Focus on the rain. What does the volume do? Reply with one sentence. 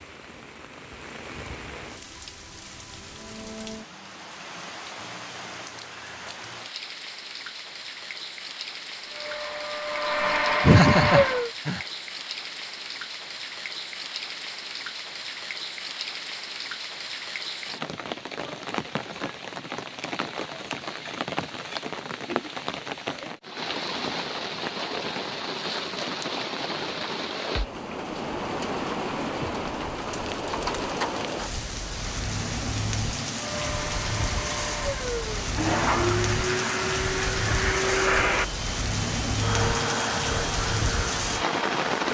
The loudness of the rain goes up.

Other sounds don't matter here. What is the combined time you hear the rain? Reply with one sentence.
You can hear the rain for 42 seconds altogether.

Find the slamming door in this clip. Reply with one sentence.
You can't hear the slamming door here.